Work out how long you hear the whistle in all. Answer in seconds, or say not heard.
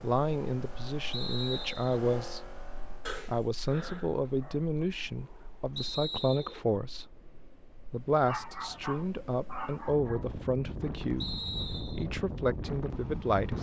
3 s.